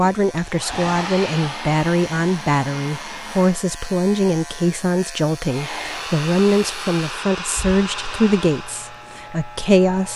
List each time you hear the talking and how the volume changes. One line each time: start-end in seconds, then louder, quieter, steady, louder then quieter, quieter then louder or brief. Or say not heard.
0.0-10.1 steady.